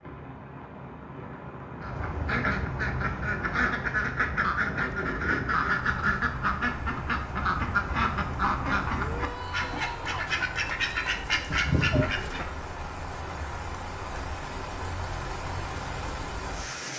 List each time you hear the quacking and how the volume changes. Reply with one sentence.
The quacking can be heard from 1.8 to 12.4 s, at a steady volume.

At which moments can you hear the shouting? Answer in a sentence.
The shouting can be heard from 8.9 to 10.2 s.